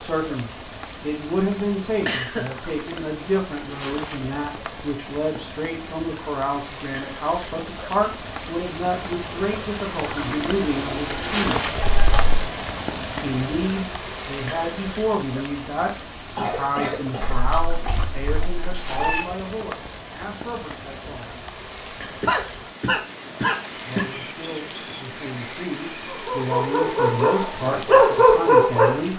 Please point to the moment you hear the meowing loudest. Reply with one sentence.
The volume of the meowing peaks at 19 seconds.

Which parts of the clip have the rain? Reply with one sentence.
The rain can be heard from 0.0 to 29.1 s.